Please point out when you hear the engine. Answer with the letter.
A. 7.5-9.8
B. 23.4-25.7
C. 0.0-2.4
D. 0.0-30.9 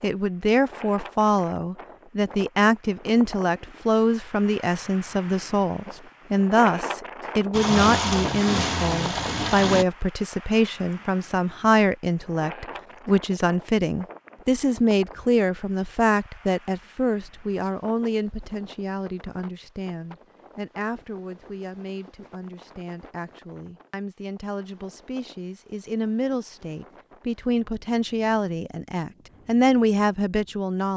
A.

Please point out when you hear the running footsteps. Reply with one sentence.
You can't hear the running footsteps here.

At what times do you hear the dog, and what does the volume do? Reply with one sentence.
The dog can't be heard in this clip.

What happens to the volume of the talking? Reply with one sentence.
The loudness of the talking goes down, then up.